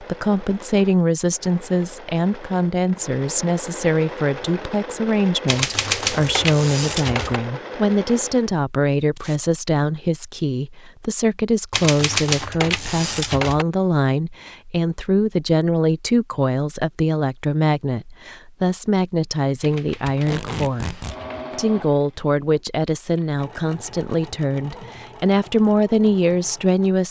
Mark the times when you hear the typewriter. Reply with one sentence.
You can hear the typewriter from 5.5 to 7.4 s, from 11.7 to 13.7 s and from 19.6 to 21.4 s.